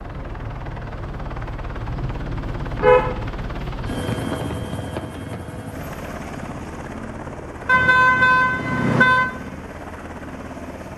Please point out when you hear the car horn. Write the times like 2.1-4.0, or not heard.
1.9-3.2, 7.7-9.3.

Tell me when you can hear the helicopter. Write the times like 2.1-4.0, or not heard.
0.0-10.9.